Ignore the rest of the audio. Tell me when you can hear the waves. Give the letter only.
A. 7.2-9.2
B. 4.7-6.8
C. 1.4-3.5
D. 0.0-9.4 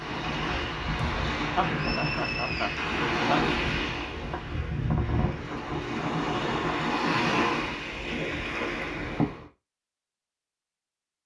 D.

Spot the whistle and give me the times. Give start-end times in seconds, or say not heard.
1.7-2.9.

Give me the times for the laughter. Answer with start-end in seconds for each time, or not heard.
1.4-3.5.